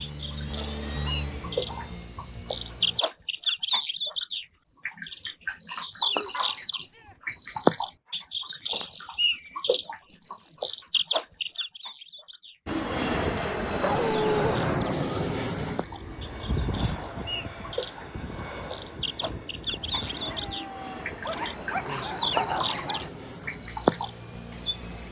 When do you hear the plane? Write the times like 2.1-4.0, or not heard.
0.0-3.0, 12.7-25.0.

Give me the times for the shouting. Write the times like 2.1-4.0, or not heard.
6.8-7.2, 20.1-21.1.